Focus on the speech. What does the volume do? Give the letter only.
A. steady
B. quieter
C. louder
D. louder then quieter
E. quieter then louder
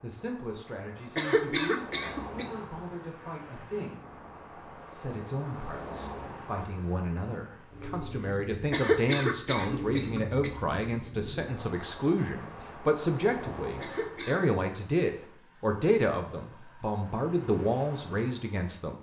C.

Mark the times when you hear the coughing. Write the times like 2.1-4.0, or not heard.
1.1-2.5, 8.7-10.7, 13.8-14.4.